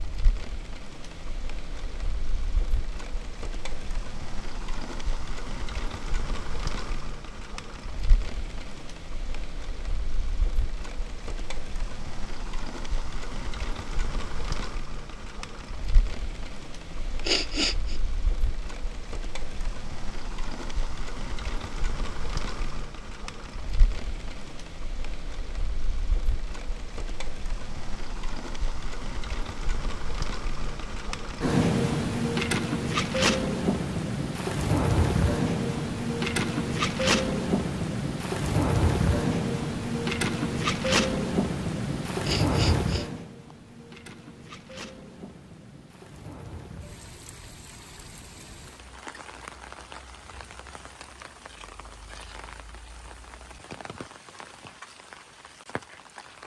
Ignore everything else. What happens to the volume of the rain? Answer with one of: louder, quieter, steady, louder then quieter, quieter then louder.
louder then quieter.